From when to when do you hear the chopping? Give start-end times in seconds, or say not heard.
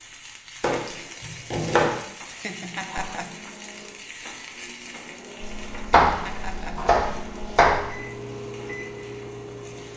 0.6-1.9, 5.4-8.0.